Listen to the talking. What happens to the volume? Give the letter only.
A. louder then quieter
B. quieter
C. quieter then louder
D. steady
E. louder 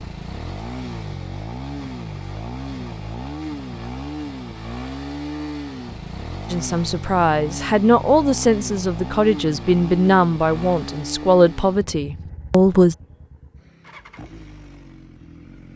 D.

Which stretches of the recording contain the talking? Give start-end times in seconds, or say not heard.
6.5-12.9.